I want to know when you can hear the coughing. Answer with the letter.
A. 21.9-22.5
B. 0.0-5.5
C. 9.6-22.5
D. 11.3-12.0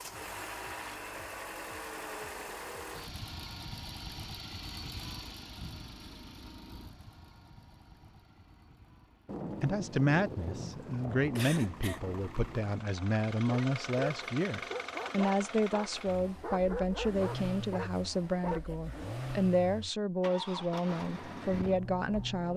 D.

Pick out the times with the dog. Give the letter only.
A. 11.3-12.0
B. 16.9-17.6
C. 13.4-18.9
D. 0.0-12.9
C.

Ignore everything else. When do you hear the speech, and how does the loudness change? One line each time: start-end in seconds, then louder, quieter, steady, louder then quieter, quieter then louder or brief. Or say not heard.
9.6-22.5 steady.